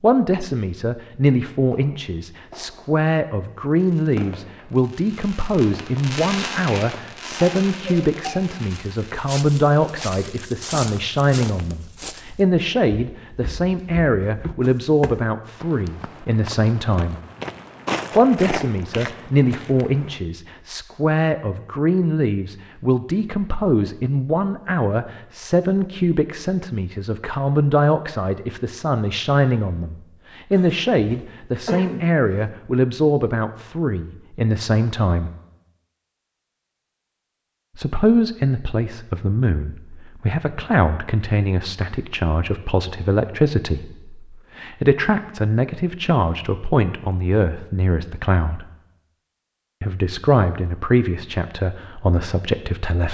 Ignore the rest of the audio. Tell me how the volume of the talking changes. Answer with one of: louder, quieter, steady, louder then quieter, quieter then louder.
steady.